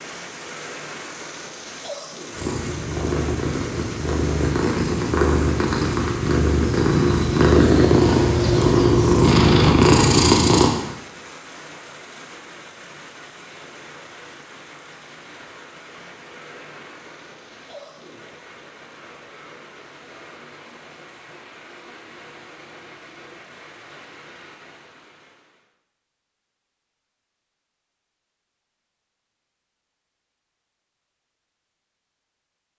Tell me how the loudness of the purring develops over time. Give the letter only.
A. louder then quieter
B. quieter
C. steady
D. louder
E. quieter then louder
D.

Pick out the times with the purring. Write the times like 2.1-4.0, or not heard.
2.3-10.7.